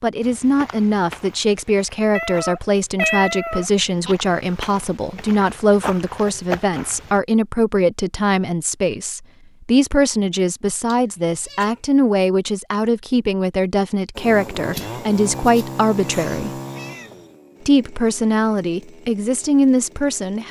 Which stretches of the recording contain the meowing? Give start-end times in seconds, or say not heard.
2.1-4.2, 10.9-11.8, 14.6-17.1.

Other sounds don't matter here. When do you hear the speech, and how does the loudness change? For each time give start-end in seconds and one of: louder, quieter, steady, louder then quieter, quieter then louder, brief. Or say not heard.
0.0-16.5 steady
17.6-20.4 brief.